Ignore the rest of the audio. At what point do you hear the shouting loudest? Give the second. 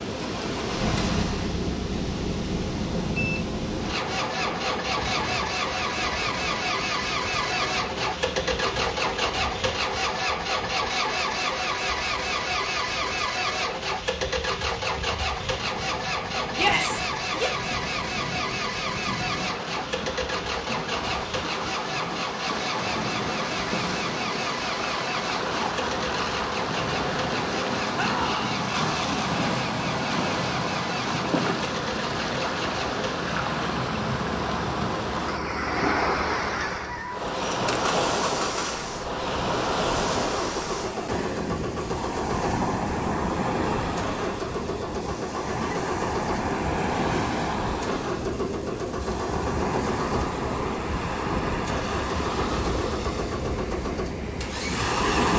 17 s.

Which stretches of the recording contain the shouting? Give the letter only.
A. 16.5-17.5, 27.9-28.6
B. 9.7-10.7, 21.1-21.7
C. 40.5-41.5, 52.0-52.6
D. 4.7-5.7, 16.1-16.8
A.